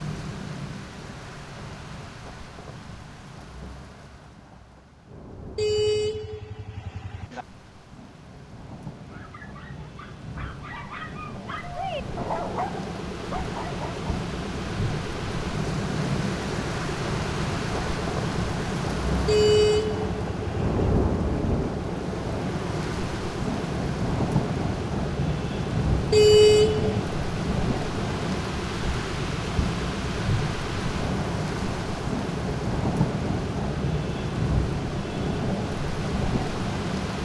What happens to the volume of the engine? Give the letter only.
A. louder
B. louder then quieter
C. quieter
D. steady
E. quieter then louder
D.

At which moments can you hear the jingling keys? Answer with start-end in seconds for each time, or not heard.
not heard.